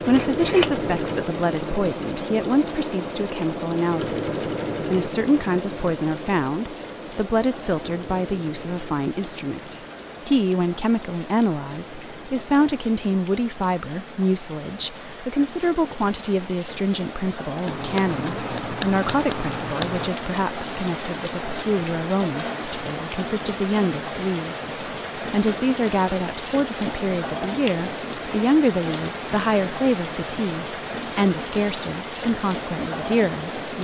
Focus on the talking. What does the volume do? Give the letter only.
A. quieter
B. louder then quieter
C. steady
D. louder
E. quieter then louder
C.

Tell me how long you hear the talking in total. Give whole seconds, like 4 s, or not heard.
34 s.